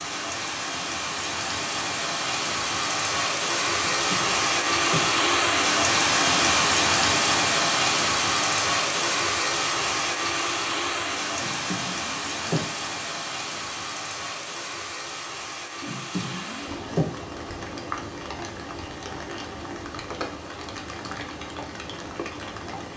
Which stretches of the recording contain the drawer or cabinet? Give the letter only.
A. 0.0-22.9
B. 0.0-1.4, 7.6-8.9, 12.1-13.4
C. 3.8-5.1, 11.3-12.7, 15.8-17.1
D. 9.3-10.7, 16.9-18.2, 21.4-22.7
C.